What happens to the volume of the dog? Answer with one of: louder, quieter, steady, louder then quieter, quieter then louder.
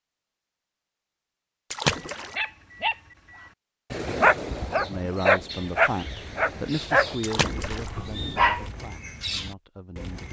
louder then quieter.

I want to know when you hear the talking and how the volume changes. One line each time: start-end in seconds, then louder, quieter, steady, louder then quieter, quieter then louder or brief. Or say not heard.
4.8-10.2 quieter.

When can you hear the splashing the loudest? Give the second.
2 s.